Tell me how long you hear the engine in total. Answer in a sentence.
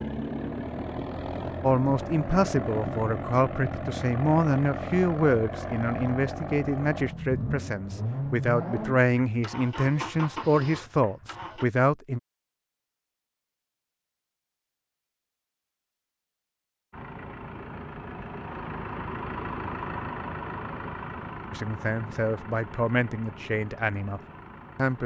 The engine can be heard for 20 seconds in total.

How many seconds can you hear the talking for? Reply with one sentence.
The talking can be heard for 14 seconds in total.